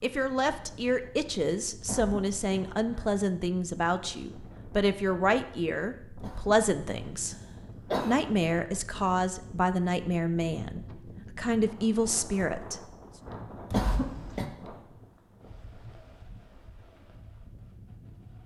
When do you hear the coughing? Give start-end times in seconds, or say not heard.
1.9-3.1, 6.2-8.3, 13.7-14.5.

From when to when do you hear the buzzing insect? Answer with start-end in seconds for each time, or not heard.
not heard.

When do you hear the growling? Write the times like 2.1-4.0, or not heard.
not heard.